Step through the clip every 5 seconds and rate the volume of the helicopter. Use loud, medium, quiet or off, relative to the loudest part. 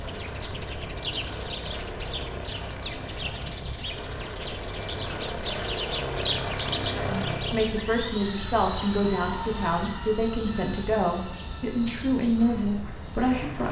medium, loud, medium.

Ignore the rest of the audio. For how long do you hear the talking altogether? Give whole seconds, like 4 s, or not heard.
7 s.